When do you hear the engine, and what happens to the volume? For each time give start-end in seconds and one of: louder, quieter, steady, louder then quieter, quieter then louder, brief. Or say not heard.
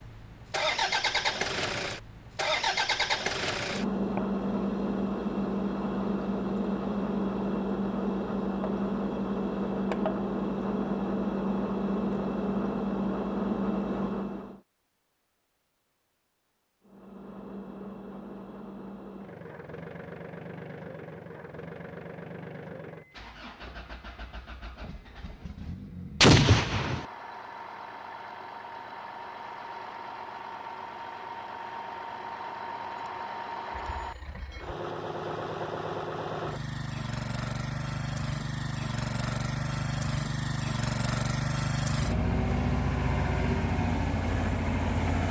0.0-14.6 steady
16.9-45.2 louder.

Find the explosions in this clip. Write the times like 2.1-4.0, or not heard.
26.2-27.1.